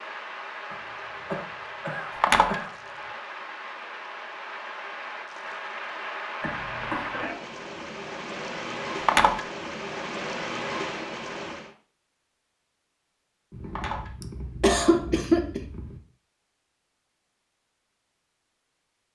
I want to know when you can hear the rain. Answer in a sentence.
The rain can be heard from 0.0 to 11.8 s.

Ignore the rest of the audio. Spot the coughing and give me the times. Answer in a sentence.
The coughing can be heard from 0.7 to 3.1 s, from 6.4 to 7.3 s and from 14.2 to 15.6 s.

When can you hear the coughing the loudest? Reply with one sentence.
The loudest moment of the coughing is at 15 seconds.